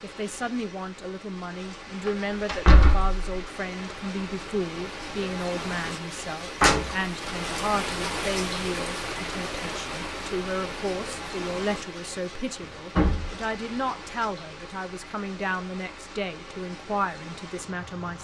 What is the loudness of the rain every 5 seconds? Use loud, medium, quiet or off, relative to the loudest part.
medium, loud, medium, medium.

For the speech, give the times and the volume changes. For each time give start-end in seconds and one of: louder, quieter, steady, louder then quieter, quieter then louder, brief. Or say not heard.
0.0-18.1 steady.